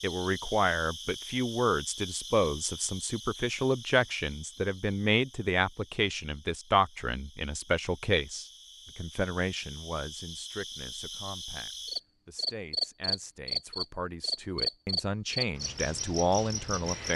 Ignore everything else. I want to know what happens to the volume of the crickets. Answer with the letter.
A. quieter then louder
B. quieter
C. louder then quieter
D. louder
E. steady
A.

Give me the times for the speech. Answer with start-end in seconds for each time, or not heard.
0.0-17.1.